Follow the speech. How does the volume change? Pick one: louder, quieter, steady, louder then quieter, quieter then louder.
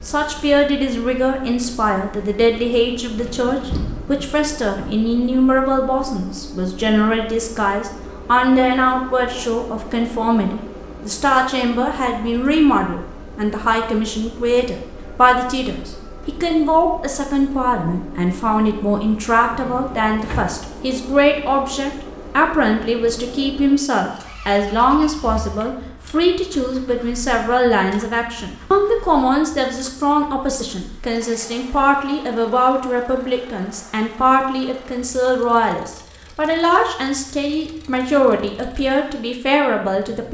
steady.